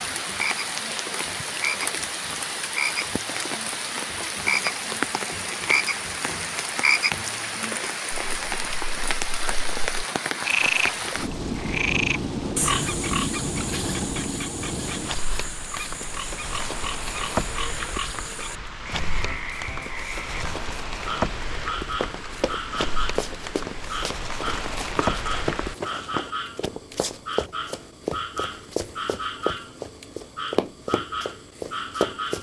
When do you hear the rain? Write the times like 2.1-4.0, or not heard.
0.0-25.8.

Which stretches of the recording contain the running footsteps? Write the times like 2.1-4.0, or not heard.
21.9-32.3.